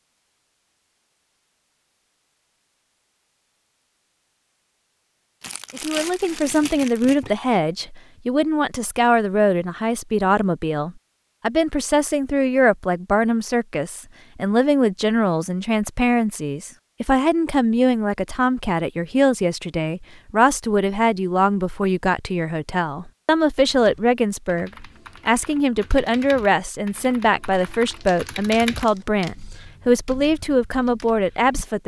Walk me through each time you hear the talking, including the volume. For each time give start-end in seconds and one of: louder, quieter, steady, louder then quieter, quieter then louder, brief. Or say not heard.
5.7-31.8 steady.